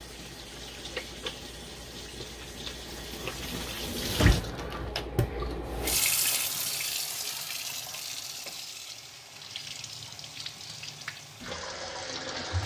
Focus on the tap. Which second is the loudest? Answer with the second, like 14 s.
6 s.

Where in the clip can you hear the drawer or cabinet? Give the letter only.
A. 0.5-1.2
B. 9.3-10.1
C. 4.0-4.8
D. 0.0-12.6
C.